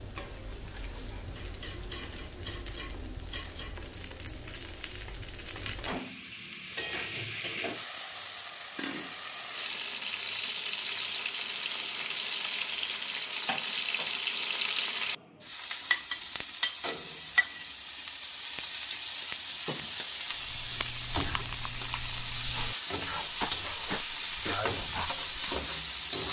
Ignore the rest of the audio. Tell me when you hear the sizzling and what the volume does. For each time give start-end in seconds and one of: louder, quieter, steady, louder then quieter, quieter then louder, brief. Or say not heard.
0.0-26.2 louder.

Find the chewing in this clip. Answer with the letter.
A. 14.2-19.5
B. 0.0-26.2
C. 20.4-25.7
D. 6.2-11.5
C.